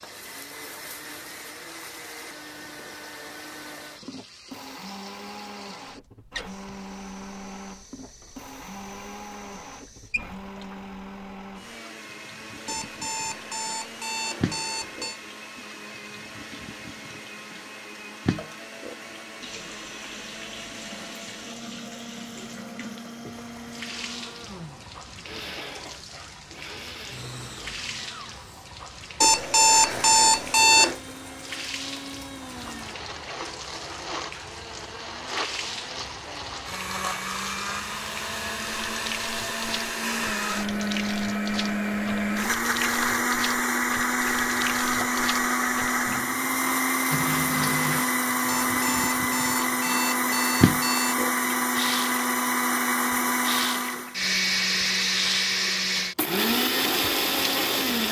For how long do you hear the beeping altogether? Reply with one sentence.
You can hear the beeping for 7 seconds altogether.